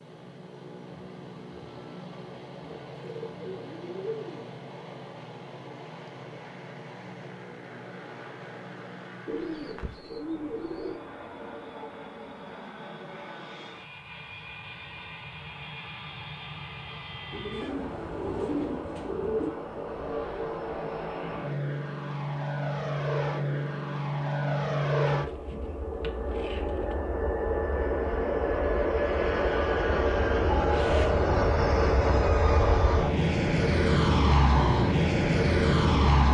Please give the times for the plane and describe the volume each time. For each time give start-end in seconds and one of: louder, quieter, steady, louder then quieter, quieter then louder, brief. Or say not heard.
0.0-36.2 louder.